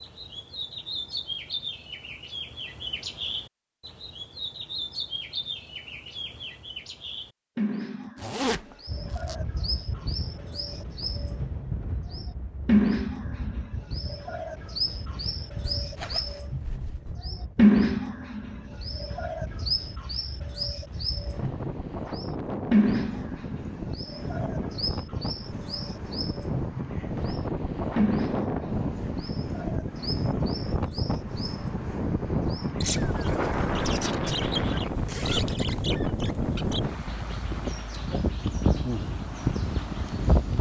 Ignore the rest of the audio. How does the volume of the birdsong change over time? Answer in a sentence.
The loudness of the birdsong goes up, then down.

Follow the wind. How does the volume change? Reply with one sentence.
The loudness of the wind goes up.